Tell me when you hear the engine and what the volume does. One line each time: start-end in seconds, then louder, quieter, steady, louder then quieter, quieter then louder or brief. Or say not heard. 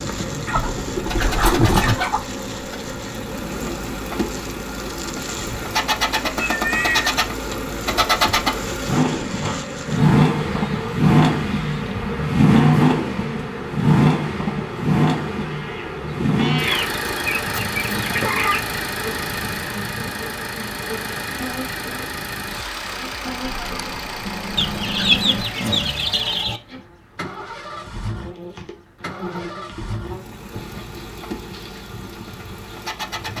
0.0-33.3 louder then quieter.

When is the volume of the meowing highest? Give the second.
7 s.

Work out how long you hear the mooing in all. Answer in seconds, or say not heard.
not heard.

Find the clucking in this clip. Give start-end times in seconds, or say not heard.
0.5-2.2, 16.6-18.6, 24.6-26.6.